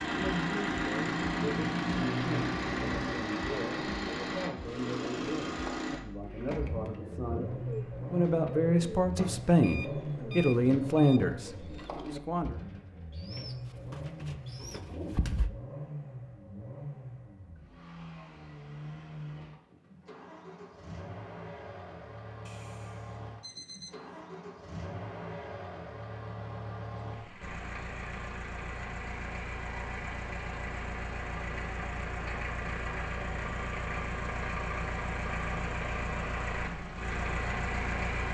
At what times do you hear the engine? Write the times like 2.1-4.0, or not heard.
0.0-38.2.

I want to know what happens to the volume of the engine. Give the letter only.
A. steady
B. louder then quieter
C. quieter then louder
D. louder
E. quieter
C.